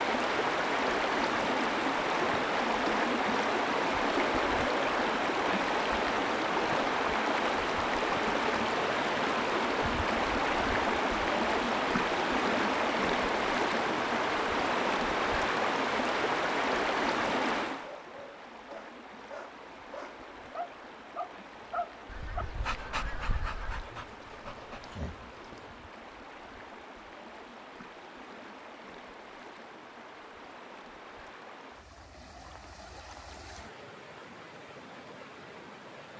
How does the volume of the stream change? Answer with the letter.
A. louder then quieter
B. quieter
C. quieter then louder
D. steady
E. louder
B.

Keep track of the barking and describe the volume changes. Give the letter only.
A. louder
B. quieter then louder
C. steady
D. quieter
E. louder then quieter
E.